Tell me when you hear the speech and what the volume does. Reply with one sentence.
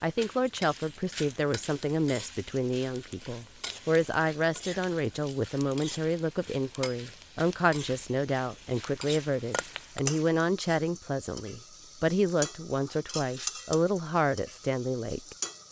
The speech can be heard from 0.0 to 15.3 s, at a steady volume.